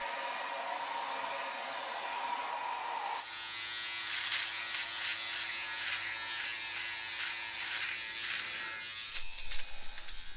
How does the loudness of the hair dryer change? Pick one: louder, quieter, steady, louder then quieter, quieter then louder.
quieter.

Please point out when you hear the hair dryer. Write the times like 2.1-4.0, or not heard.
0.0-7.8.